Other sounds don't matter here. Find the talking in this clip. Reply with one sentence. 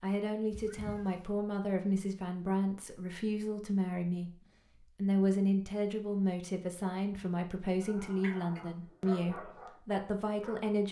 The talking can be heard from 0.0 to 10.8 s.